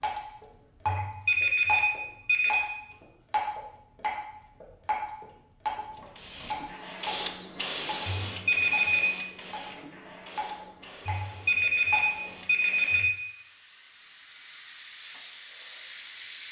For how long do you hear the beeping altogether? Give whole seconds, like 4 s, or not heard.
5 s.